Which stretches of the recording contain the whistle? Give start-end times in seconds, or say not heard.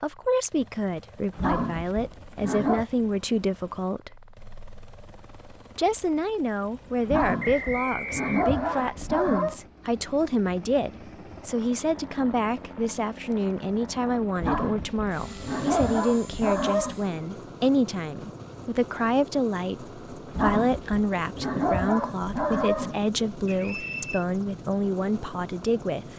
7.4-8.9, 23.4-24.2.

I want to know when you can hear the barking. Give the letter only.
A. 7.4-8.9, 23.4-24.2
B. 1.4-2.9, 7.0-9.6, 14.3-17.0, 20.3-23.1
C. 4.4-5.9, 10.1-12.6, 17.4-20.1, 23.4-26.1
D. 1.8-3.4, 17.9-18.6
B.